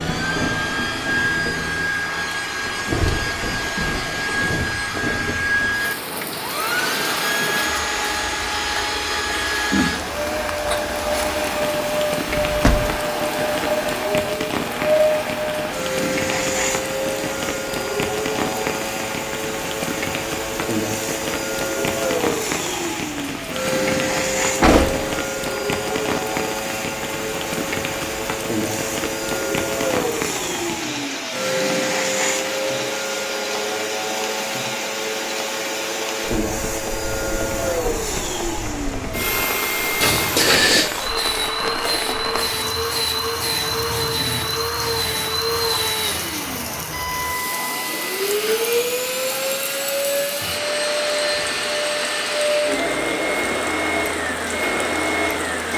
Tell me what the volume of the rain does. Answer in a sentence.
The loudness of the rain stays about the same.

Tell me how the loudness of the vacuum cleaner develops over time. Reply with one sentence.
The loudness of the vacuum cleaner stays about the same.